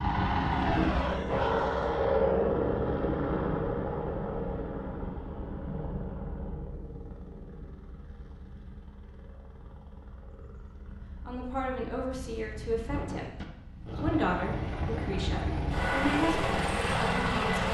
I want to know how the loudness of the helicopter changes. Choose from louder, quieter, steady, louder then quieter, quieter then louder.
quieter then louder.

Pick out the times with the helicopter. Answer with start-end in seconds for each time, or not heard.
0.0-17.6.